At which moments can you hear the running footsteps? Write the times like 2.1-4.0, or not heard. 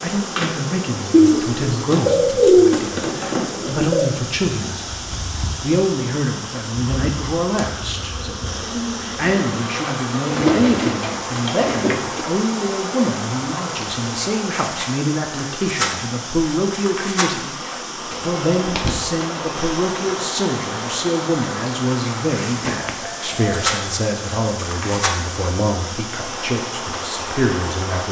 not heard.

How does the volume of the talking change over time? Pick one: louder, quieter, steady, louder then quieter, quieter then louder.
steady.